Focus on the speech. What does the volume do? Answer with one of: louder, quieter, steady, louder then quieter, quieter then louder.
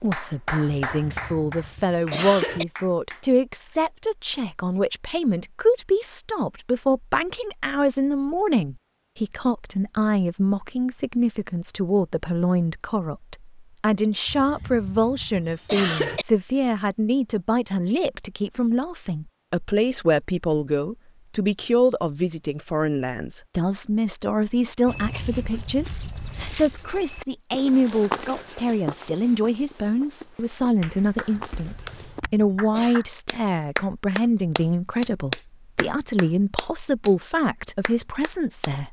steady.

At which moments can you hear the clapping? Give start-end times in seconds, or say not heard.
0.0-3.2, 30.8-37.1, 37.8-38.7.